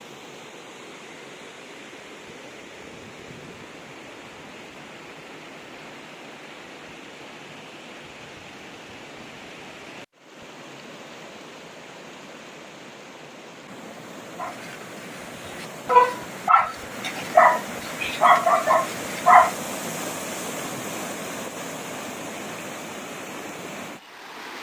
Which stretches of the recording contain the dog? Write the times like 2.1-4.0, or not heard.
14.3-19.6.